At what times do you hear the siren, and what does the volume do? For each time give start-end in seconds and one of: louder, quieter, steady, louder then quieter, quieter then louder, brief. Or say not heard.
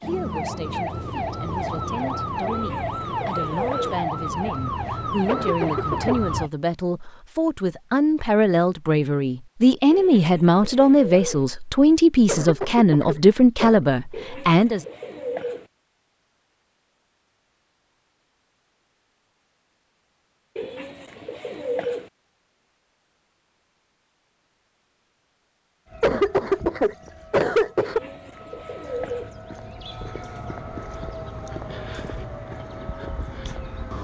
0.0-6.5 steady
25.9-33.9 louder.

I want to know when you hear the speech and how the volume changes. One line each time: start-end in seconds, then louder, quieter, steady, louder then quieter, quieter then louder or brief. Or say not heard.
0.0-14.8 louder.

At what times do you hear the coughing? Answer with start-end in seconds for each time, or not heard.
5.2-6.2, 12.2-13.8, 26.0-28.0.